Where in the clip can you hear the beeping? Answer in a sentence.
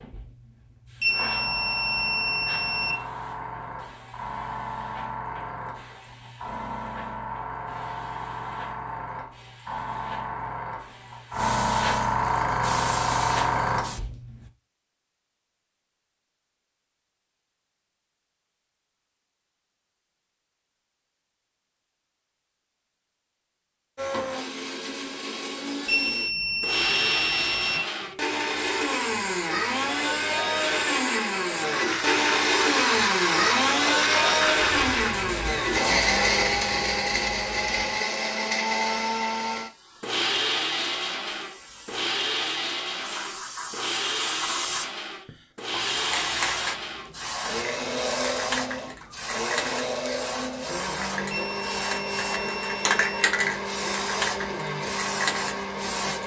You can hear the beeping from 1.0 to 3.0 s, from 25.9 to 27.8 s and from 51.3 to 53.2 s.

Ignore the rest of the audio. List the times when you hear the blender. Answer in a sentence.
You can hear the blender from 23.9 to 56.2 s.